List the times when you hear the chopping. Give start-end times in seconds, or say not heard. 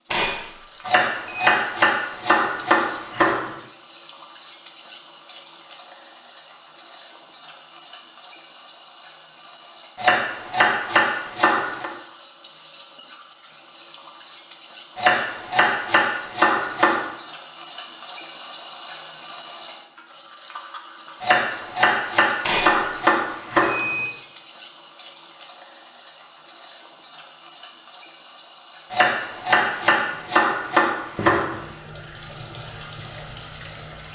0.8-3.5, 9.9-11.9, 14.9-17.1, 21.2-24.1, 28.9-31.6.